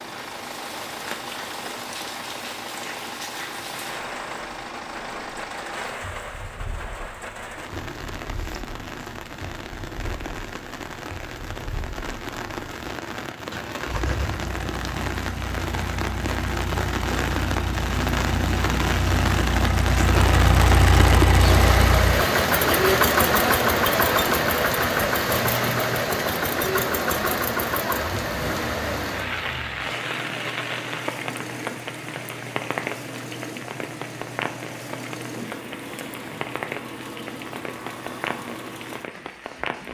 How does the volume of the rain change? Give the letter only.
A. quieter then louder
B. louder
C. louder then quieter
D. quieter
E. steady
C.